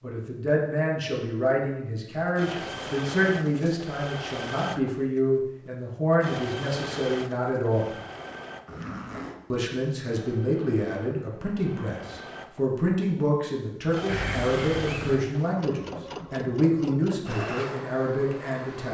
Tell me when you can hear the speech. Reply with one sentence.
You can hear the speech from 0.0 to 7.9 s and from 9.5 to 18.8 s.